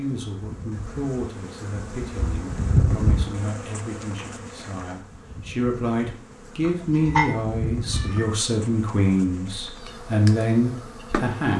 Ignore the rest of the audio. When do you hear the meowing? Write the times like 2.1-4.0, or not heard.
6.6-8.3.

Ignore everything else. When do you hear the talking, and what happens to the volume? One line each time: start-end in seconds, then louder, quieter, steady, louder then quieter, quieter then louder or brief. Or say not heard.
0.0-11.5 louder.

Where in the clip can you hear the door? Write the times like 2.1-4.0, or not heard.
not heard.